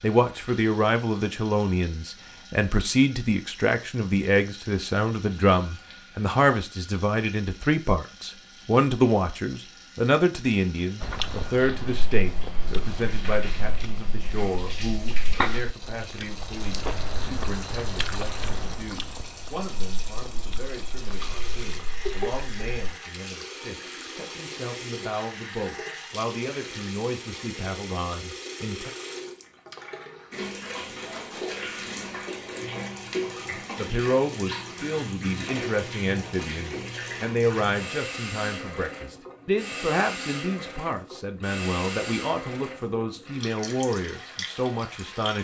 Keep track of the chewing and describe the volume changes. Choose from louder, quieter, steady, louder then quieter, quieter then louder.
louder then quieter.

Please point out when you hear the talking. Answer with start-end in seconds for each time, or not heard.
0.0-28.9, 33.8-45.3.